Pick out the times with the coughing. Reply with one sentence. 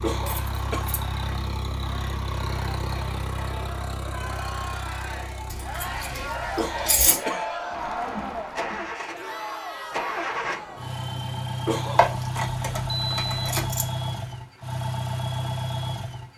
The coughing can be heard from 0.0 to 0.8 s, from 6.5 to 7.5 s and from 11.7 to 12.4 s.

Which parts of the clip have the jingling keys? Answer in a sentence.
The jingling keys can be heard from 0.2 to 1.1 s, from 5.5 to 7.2 s and from 11.9 to 13.9 s.